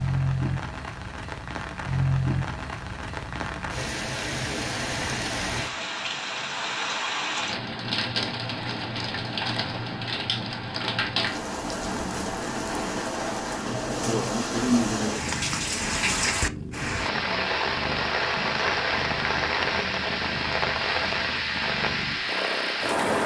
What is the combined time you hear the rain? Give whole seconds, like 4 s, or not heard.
23 s.